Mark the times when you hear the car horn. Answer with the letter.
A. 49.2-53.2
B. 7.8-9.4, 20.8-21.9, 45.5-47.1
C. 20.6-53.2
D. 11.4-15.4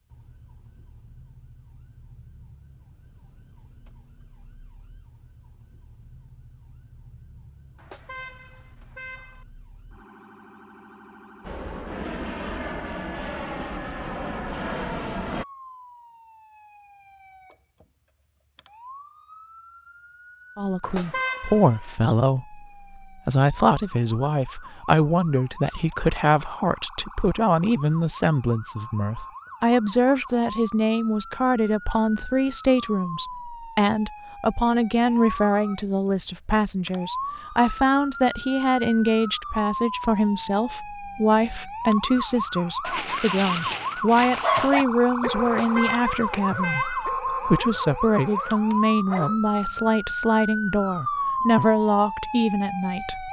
B.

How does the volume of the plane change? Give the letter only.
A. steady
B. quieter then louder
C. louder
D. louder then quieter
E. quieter
A.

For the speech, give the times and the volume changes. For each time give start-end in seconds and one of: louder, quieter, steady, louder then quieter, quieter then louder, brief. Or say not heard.
20.6-53.2 steady.